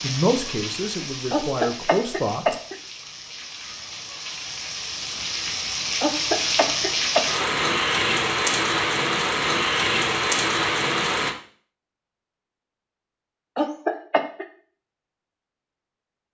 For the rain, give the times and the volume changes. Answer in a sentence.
The rain can be heard from 0.0 to 11.3 s, getting louder.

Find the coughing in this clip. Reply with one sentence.
You can hear the coughing from 1.3 to 2.8 s, from 6.0 to 7.5 s and from 13.6 to 14.4 s.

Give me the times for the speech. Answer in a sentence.
You can hear the speech from 0.0 to 2.5 s.